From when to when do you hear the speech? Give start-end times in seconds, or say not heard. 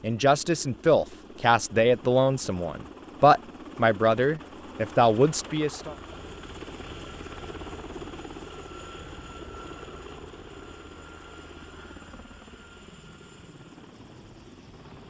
0.0-6.0.